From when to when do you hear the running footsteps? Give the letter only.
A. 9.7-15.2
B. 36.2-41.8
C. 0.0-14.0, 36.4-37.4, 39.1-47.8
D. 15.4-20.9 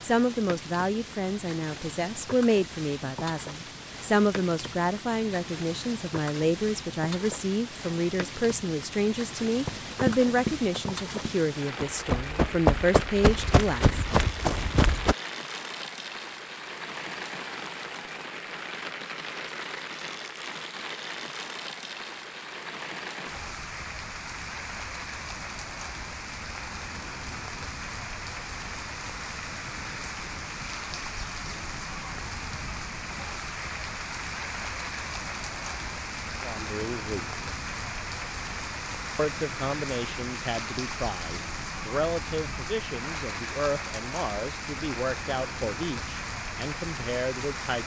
A.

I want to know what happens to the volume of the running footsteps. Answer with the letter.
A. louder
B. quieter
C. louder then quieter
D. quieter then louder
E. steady
D.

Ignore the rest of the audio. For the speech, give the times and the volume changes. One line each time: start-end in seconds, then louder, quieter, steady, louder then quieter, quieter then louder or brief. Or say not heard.
0.0-14.0 steady
36.4-37.4 brief
39.1-47.8 steady.